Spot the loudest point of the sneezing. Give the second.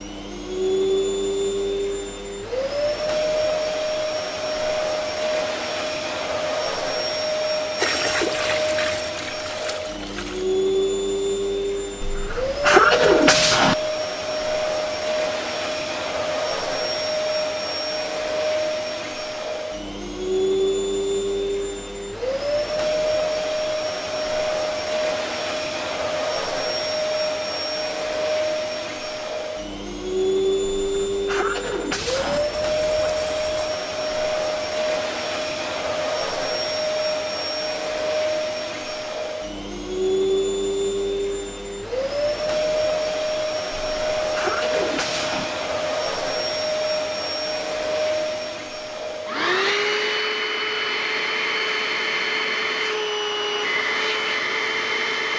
13 s.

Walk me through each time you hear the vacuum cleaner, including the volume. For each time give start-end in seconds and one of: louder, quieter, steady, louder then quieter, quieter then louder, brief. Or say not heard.
0.0-55.3 steady.